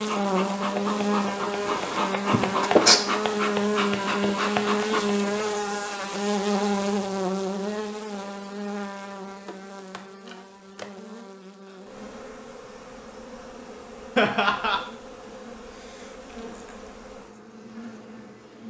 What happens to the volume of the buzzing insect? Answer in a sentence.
The volume of the buzzing insect goes down.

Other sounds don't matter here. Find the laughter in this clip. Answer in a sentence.
You can hear the laughter from 2.3 to 3.0 s and from 14.2 to 14.8 s.